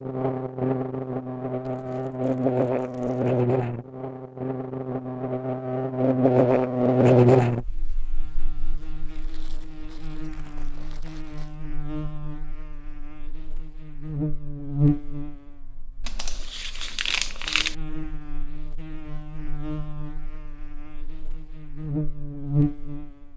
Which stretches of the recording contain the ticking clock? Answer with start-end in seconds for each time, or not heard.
not heard.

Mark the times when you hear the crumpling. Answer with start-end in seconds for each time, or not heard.
1.6-3.4, 9.1-11.6, 16.1-17.8.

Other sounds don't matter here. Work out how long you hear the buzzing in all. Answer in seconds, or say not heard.
23 s.